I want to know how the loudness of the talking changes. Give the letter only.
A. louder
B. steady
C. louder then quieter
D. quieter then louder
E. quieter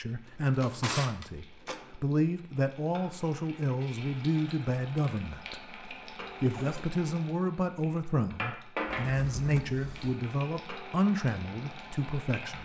B.